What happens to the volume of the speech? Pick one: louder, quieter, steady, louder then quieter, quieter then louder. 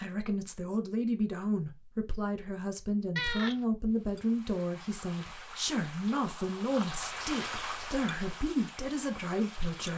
steady.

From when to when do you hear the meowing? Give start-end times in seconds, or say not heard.
3.1-3.6.